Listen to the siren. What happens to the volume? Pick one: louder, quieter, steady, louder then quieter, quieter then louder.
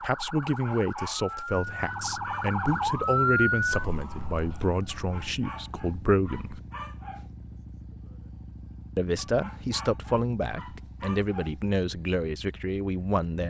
louder then quieter.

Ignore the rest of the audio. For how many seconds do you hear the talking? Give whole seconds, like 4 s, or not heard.
11 s.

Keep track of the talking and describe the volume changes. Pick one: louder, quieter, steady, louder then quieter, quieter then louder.
steady.